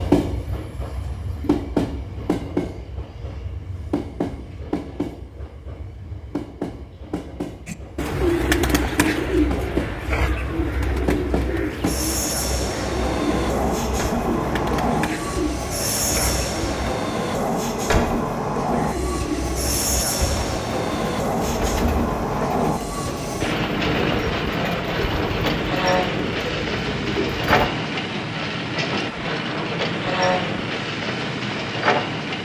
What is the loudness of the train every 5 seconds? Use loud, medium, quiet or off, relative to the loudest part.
loud, medium, loud, loud, loud, loud, loud.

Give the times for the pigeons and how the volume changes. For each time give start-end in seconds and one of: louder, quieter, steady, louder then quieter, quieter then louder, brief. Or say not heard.
7.7-16.9 quieter
18.7-27.7 steady.